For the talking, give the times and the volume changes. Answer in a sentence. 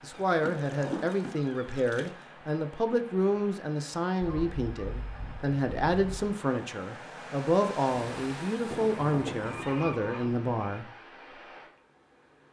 You can hear the talking from 0.0 to 10.8 s, at a steady volume.